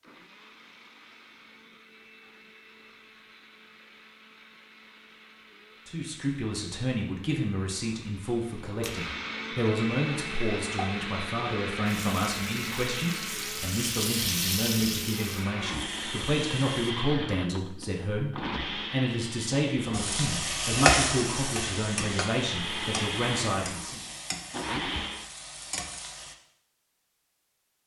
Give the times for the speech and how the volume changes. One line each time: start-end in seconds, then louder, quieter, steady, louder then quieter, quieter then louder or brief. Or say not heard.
5.8-24.0 steady.